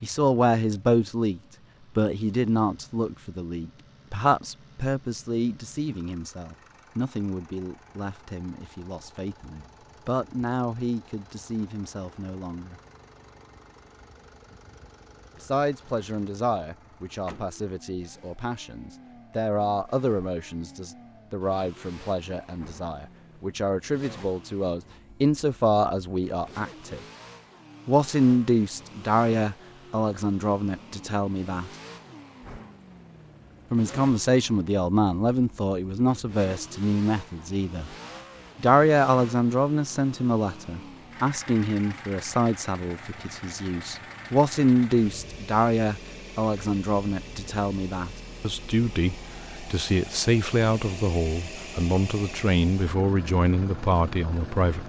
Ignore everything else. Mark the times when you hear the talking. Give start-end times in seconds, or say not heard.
0.0-12.8, 15.3-27.0, 27.9-31.7, 33.7-37.9, 38.6-54.8.